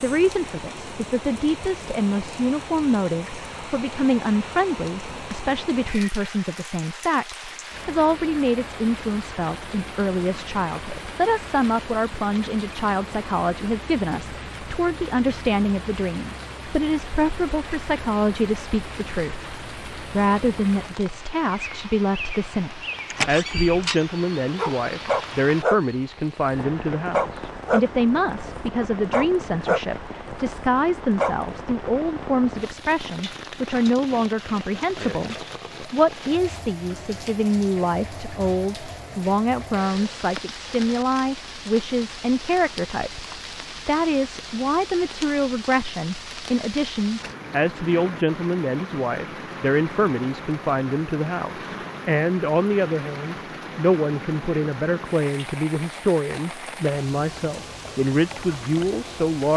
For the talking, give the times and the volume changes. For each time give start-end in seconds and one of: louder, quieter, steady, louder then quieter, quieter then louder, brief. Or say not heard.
0.0-59.5 steady.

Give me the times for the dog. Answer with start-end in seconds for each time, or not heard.
24.6-25.8, 26.5-27.8, 28.6-29.8, 30.6-31.4.